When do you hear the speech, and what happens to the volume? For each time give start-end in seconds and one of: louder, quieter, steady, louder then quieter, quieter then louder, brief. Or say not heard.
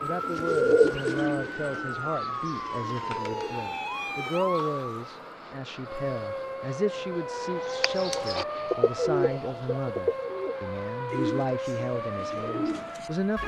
0.0-13.4 steady.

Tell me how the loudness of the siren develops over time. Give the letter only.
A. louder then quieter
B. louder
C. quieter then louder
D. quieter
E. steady
E.